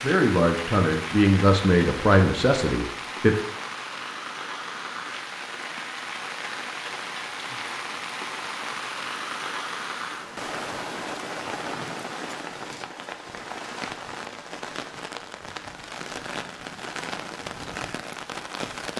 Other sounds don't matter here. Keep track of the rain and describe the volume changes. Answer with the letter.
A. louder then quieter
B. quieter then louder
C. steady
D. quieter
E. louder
C.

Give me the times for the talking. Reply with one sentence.
You can hear the talking from 0.0 to 3.4 s.